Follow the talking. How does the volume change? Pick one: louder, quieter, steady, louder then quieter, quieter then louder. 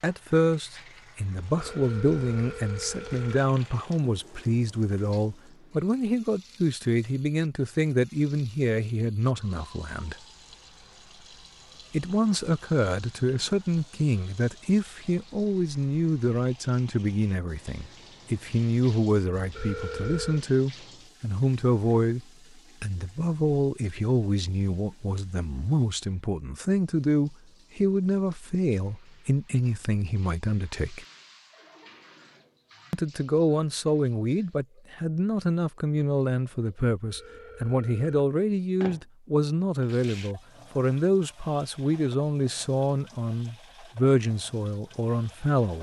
steady.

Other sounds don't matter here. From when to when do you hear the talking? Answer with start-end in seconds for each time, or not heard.
0.0-10.2, 11.9-31.1, 32.9-45.7.